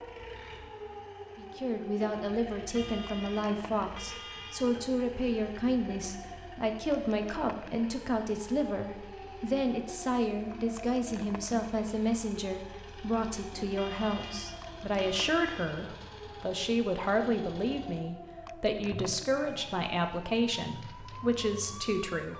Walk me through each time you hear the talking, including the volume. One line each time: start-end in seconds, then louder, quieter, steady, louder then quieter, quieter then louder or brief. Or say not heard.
1.4-22.3 steady.